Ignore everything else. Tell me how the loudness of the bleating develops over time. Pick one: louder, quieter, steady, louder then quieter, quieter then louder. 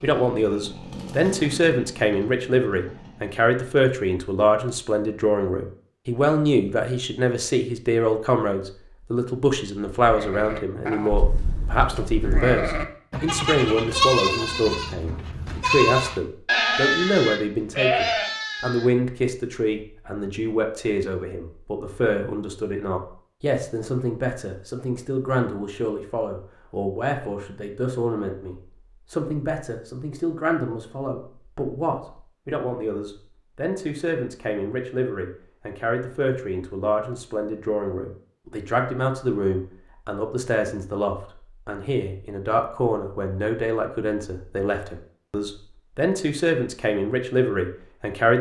louder.